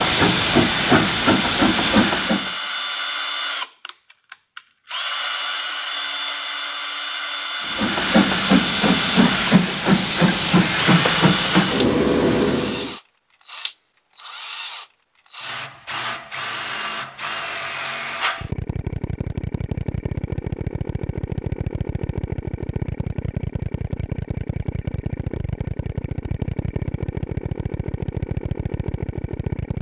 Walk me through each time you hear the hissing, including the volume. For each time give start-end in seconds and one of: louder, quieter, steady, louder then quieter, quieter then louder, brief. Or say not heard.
0.0-2.5 brief
7.7-12.9 steady.